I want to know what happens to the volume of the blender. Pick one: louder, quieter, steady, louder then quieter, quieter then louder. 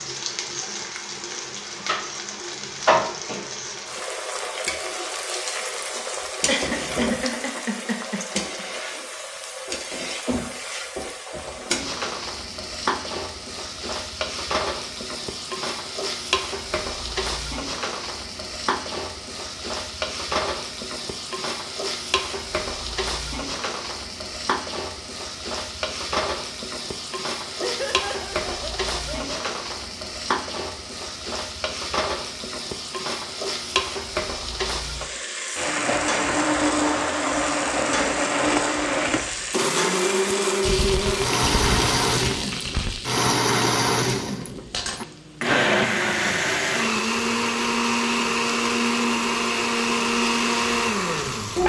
steady.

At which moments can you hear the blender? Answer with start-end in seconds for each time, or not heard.
35.5-51.6.